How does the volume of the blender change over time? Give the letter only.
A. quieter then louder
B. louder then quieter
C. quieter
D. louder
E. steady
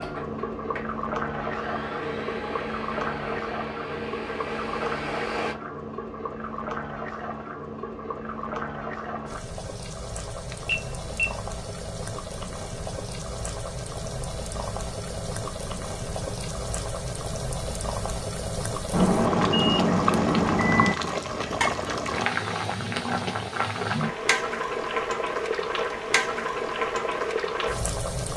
D.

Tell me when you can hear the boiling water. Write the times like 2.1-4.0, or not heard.
0.0-28.3.